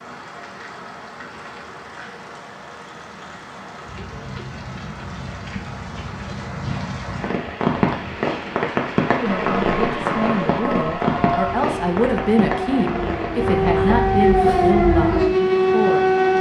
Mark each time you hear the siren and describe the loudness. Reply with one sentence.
The siren can be heard from 9.2 to 16.3 s, getting louder.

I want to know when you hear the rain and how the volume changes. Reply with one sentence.
You can hear the rain from 0.0 to 16.3 s, getting louder then quieter.